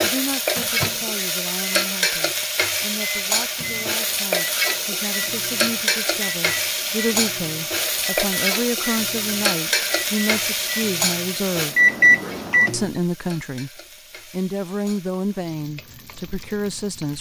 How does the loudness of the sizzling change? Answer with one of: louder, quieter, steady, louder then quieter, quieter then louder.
quieter.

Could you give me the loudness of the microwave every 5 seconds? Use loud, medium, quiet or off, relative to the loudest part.
quiet, quiet, loud, off.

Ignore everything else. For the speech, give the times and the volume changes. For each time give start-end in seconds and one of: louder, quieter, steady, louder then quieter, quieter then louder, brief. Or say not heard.
0.0-11.8 louder
12.7-17.1 steady.